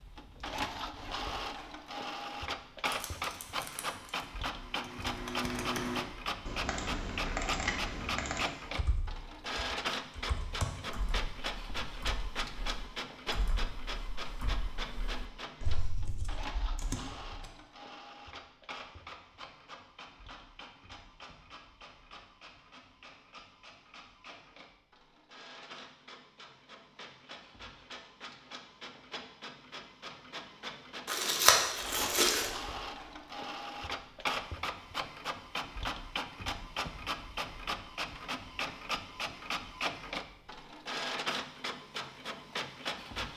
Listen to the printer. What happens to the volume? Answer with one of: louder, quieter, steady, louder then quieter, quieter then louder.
quieter then louder.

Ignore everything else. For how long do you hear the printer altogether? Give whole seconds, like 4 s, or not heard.
43 s.